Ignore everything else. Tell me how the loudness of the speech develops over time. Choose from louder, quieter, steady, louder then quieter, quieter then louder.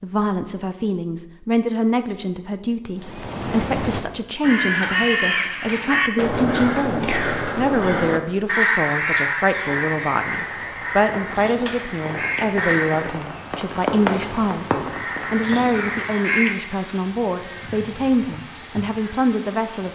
steady.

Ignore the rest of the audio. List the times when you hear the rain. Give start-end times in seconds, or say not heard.
9.6-19.9.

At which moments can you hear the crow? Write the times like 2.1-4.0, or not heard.
3.0-13.2, 14.8-19.9.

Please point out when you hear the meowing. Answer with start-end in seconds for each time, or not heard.
not heard.